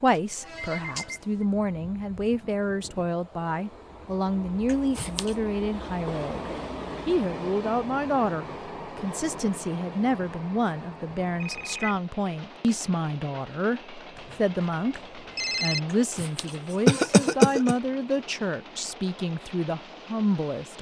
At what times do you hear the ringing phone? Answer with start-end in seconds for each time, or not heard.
0.1-1.2, 11.4-12.0, 14.2-15.8.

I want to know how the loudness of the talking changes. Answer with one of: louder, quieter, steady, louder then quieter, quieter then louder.
steady.